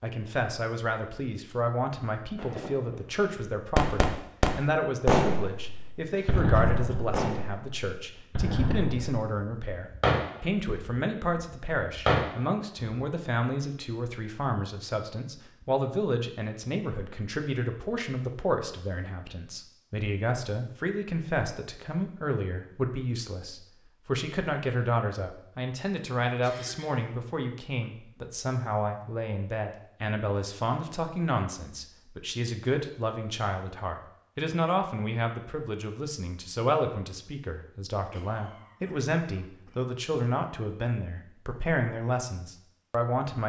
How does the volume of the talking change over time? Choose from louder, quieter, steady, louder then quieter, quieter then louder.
steady.